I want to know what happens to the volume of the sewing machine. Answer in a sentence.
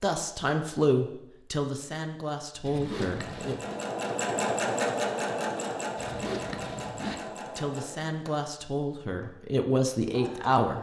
The loudness of the sewing machine goes down.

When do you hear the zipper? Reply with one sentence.
You can hear the zipper from 2.6 to 3.8 s and from 6.0 to 7.2 s.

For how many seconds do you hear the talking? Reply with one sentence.
The talking can be heard for 7 seconds in total.